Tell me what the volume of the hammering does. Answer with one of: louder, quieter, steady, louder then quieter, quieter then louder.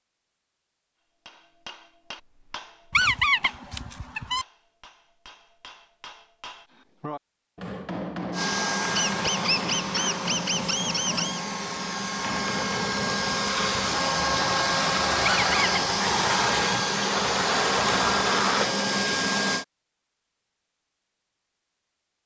quieter then louder.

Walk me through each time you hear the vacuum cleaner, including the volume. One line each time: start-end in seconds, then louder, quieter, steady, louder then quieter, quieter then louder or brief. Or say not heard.
8.3-19.6 louder.